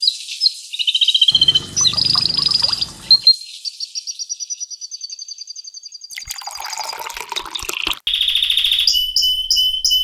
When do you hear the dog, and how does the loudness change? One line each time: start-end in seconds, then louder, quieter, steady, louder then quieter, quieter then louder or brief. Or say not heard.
not heard.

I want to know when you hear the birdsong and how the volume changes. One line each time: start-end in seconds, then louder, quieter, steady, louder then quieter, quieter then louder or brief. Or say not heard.
0.0-9.9 quieter then louder.